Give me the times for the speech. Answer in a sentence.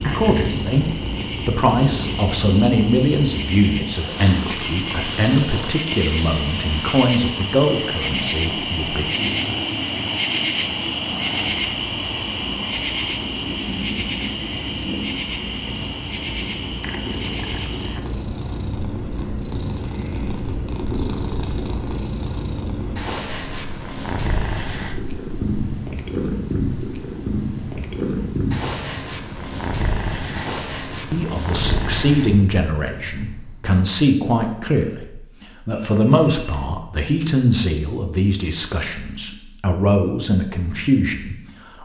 The speech can be heard from 0.0 to 9.1 s and from 31.1 to 41.7 s.